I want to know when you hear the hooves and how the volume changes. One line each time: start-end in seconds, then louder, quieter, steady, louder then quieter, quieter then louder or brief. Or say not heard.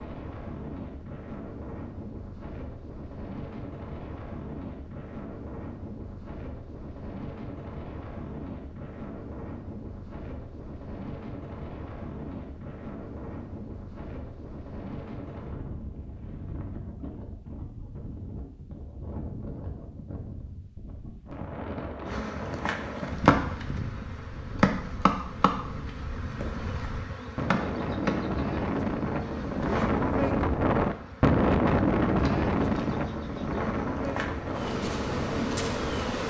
not heard.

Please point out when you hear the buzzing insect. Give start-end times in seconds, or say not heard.
22.1-36.2.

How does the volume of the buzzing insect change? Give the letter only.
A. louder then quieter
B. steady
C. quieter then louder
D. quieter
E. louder
C.